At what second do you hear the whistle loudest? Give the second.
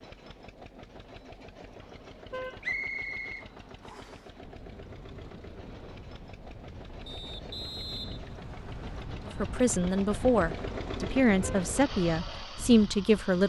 3 s.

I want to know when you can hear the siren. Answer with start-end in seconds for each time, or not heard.
not heard.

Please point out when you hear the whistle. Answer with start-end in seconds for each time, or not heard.
2.6-4.2, 7.0-9.1.